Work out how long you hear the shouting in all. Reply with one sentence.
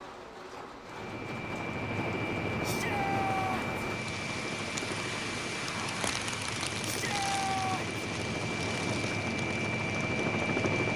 You can hear the shouting for 2 seconds altogether.